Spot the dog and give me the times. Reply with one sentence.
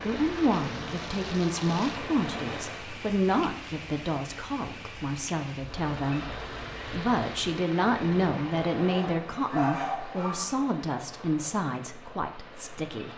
You can hear the dog from 8.8 to 10.6 s.